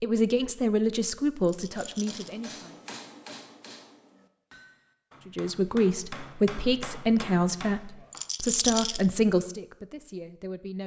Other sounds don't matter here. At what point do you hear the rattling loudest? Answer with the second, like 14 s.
9 s.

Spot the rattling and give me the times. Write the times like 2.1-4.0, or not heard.
1.4-2.4, 8.1-9.1.